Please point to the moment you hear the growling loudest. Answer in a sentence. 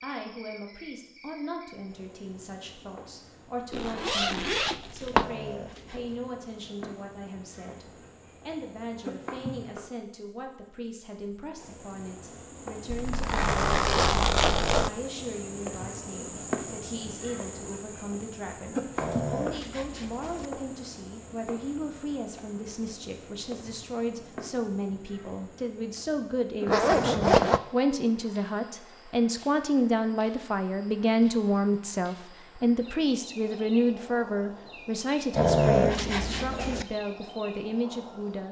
The volume of the growling peaks at 36 seconds.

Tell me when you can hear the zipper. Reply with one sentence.
The zipper can be heard from 3.7 to 5.2 s, from 12.9 to 14.9 s and from 26.6 to 27.6 s.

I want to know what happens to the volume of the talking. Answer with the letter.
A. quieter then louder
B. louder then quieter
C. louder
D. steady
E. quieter
C.